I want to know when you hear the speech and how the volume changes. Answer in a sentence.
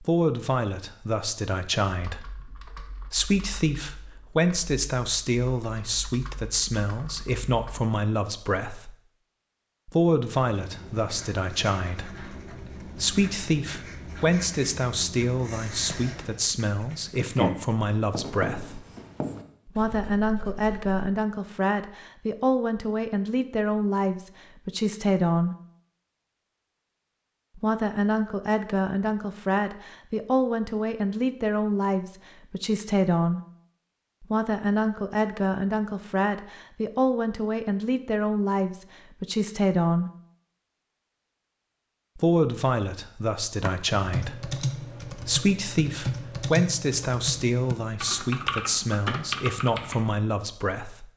The speech can be heard from 0.0 to 8.9 s, at a steady volume; from 9.8 to 18.8 s, at a steady volume; from 19.6 to 25.6 s, at a steady volume; from 27.6 to 33.4 s, at a steady volume; from 34.2 to 40.1 s, at a steady volume; and from 42.1 to 51.0 s, at a steady volume.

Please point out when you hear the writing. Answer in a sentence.
You can hear the writing from 10.4 to 21.0 s.